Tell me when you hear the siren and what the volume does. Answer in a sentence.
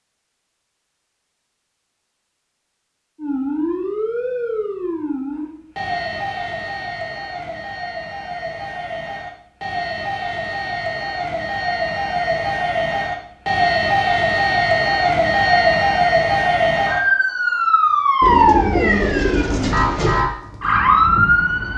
You can hear the siren from 3.1 to 21.7 s, getting louder.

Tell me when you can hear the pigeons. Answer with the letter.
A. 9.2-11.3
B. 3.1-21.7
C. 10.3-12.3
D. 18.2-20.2
D.